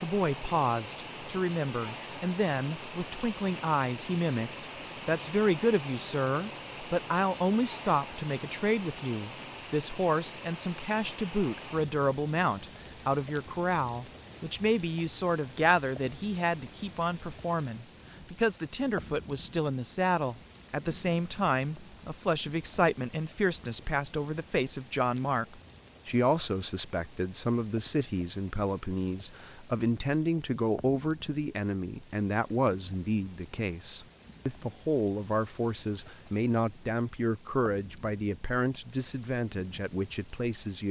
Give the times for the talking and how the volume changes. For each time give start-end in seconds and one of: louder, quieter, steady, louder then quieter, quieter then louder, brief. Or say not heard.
0.0-40.8 steady.